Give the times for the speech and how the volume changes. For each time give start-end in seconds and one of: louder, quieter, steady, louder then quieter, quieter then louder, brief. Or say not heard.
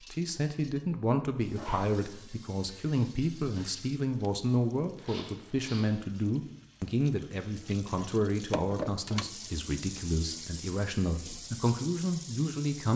0.1-12.9 steady.